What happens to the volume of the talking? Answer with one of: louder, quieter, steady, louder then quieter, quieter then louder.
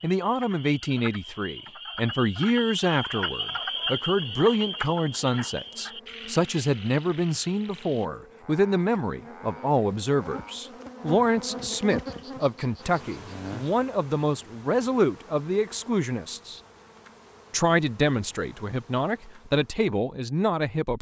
steady.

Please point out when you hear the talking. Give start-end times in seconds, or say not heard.
0.0-16.6, 17.5-20.9.